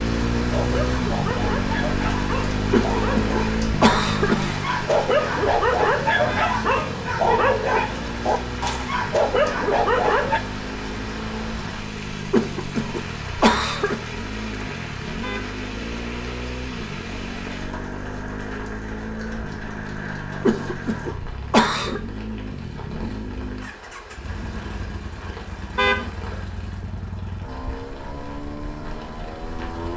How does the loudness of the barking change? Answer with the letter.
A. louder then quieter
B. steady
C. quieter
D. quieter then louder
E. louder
E.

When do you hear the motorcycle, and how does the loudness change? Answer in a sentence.
The motorcycle can be heard from 0.0 to 29.9 s, getting quieter.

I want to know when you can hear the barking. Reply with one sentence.
The barking can be heard from 0.5 to 10.4 s.